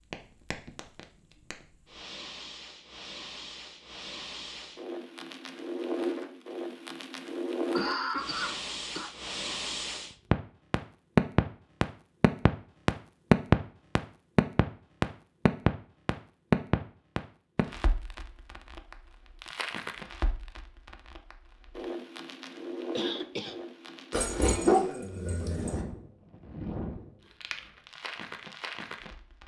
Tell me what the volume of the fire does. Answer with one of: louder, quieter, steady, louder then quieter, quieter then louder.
louder then quieter.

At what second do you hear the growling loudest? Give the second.
25 s.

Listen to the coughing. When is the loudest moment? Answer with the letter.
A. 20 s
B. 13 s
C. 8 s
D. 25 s
C.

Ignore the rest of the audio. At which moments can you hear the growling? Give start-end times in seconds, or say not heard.
24.1-25.9.